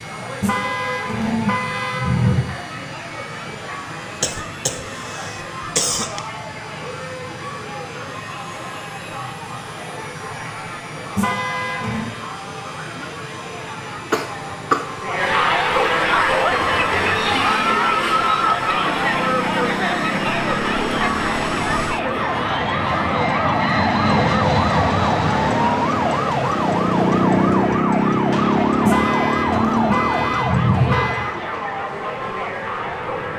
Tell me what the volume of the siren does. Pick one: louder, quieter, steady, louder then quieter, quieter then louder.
louder.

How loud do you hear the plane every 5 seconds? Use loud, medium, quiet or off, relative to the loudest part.
quiet, quiet, quiet, quiet, loud, loud, quiet.